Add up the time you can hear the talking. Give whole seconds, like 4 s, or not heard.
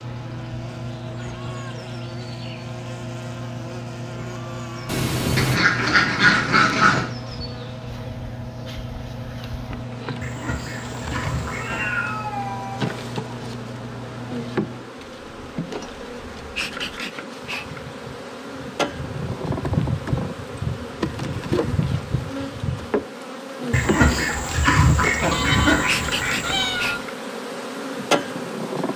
not heard.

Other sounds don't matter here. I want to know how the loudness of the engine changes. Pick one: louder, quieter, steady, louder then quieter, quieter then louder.
steady.